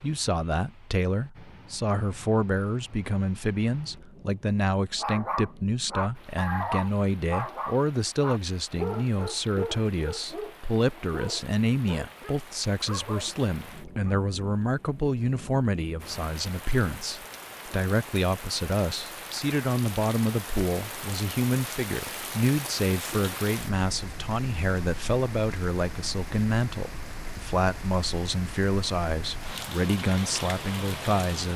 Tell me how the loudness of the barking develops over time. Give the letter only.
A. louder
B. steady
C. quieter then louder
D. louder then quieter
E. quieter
E.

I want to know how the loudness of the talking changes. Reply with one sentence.
The loudness of the talking stays about the same.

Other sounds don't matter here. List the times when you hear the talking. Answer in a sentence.
The talking can be heard from 0.0 to 31.5 s.